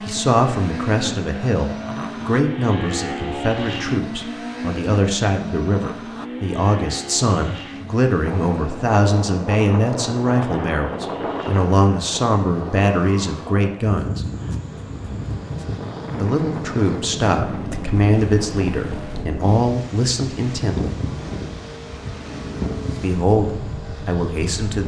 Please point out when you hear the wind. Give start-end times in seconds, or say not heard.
8.2-24.8.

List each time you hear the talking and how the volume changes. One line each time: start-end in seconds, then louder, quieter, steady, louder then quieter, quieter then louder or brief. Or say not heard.
0.0-14.2 steady
16.1-20.9 steady
23.0-24.8 brief.